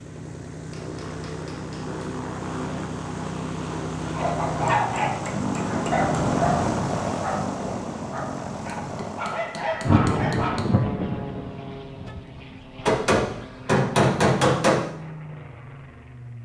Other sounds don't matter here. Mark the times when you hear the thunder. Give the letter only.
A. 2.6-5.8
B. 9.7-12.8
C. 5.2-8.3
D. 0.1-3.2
B.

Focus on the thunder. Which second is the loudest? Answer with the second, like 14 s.
10 s.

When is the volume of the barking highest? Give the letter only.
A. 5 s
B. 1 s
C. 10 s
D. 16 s
A.